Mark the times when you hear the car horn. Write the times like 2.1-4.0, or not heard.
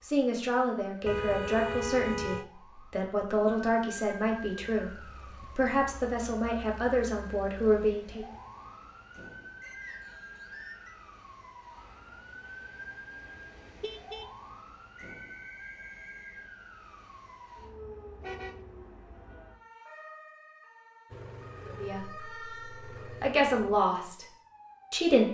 1.1-2.5, 13.2-14.3, 18.2-18.6.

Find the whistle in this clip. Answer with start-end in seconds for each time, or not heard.
9.6-10.9, 14.9-16.4.